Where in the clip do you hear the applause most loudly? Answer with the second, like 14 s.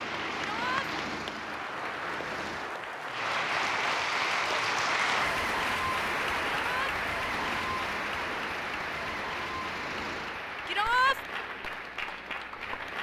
5 s.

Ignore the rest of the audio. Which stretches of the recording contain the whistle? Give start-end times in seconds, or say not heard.
not heard.